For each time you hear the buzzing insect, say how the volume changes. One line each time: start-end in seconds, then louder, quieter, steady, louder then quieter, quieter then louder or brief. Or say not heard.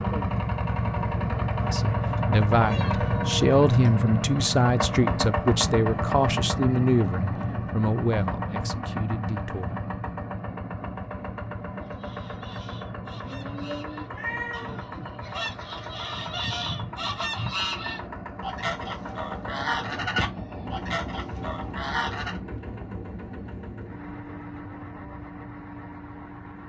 not heard.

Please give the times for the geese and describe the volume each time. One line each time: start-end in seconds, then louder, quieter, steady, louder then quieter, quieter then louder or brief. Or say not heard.
11.8-22.4 louder.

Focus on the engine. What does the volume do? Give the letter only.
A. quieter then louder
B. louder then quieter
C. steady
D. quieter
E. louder
D.